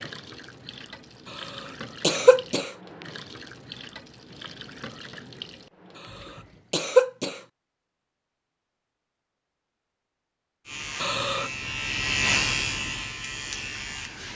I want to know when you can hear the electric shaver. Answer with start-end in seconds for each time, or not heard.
10.7-14.3.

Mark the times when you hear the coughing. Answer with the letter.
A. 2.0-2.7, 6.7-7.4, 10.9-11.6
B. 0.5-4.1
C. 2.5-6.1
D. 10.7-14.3
A.